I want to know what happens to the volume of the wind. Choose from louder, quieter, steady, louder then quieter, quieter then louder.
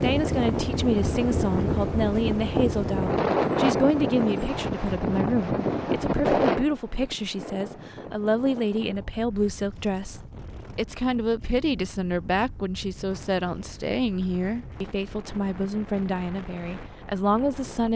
quieter.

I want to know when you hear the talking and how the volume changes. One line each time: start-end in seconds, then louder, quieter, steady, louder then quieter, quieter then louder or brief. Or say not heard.
0.0-17.9 steady.